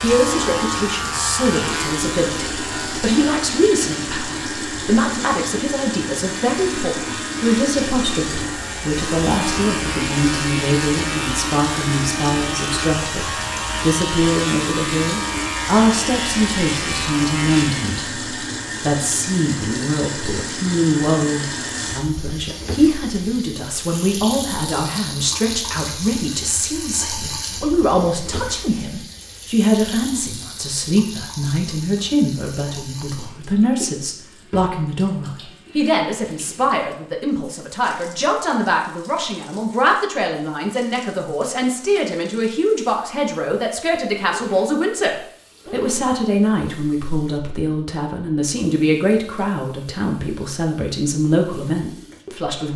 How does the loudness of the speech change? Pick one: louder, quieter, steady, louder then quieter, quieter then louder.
steady.